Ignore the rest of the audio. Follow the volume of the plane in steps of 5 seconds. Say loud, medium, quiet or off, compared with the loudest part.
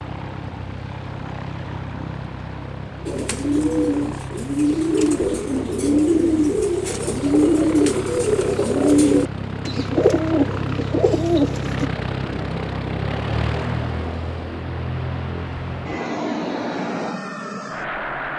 medium, medium, loud, loud.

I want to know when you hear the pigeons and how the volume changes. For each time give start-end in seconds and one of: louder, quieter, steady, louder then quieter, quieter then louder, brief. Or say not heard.
3.0-11.9 steady.